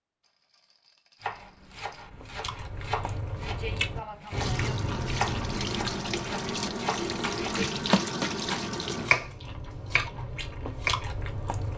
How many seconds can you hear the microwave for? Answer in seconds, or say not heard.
not heard.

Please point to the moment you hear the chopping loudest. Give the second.
9 s.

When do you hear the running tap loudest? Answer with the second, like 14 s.
8 s.